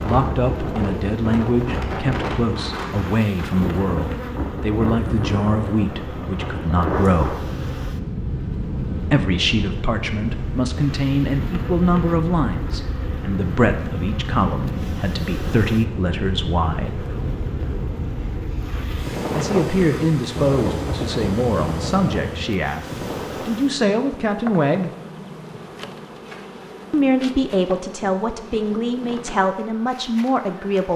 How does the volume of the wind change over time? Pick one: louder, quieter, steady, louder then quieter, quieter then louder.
steady.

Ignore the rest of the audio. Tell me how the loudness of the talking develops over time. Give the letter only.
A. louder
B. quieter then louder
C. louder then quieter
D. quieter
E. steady
E.